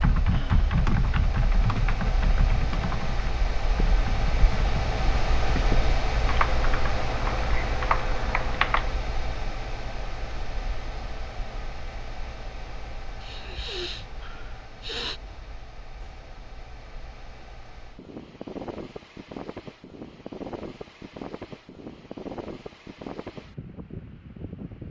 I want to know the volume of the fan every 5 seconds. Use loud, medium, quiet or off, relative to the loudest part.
loud, loud, medium, medium, medium.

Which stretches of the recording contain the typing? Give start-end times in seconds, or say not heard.
0.0-9.0.